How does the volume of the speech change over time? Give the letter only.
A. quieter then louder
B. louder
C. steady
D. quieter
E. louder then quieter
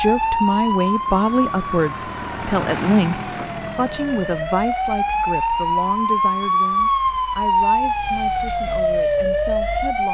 D.